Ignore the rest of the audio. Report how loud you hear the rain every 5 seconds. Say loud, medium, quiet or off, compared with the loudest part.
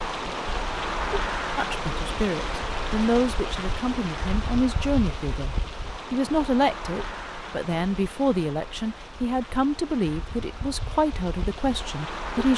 loud, medium, medium.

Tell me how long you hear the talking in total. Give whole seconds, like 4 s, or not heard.
11 s.